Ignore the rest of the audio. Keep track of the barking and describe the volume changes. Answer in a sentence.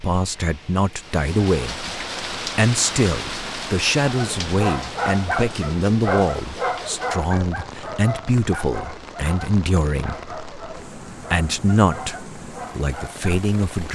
The loudness of the barking goes down.